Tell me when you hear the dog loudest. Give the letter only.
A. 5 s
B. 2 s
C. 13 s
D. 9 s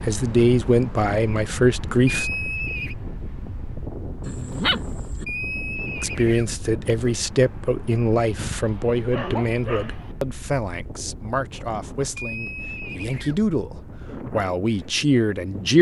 A.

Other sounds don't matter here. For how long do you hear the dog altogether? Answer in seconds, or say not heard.
3 s.